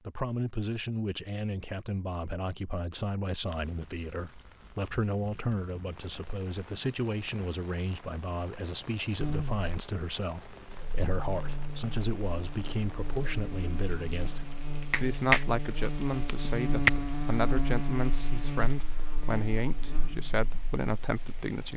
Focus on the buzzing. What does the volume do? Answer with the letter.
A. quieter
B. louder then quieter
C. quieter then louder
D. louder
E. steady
B.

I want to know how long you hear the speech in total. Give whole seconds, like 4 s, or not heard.
22 s.